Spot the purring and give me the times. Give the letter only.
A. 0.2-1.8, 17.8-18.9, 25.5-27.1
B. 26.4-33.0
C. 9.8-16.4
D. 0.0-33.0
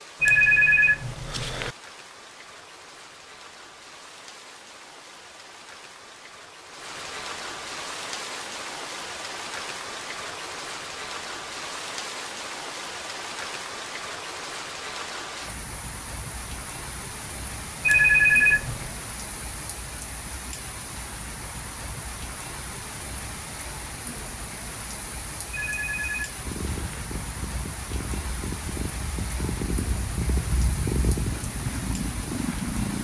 B.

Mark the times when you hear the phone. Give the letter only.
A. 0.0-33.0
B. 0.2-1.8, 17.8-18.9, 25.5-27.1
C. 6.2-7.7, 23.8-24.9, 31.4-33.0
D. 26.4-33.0
B.